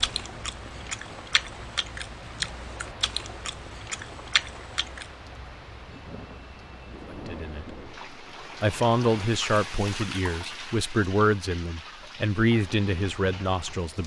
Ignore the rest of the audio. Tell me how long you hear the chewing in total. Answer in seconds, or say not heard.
5 s.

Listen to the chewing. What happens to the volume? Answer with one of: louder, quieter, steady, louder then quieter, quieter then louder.
louder.